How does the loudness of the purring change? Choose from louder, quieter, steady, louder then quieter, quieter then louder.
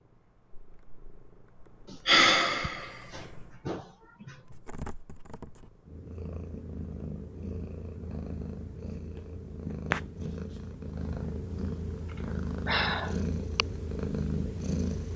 louder.